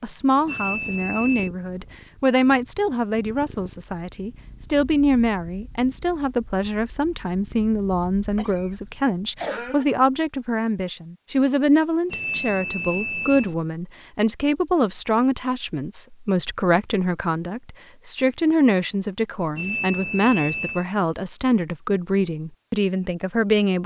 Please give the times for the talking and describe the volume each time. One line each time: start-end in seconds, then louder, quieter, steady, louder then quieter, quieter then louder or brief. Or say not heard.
0.0-23.8 steady.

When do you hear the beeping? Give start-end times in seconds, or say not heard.
0.5-1.5, 12.1-13.6, 19.6-20.9.